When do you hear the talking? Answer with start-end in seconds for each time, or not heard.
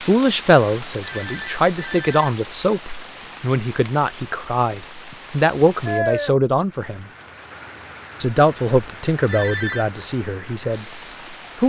0.1-7.0, 8.2-11.6.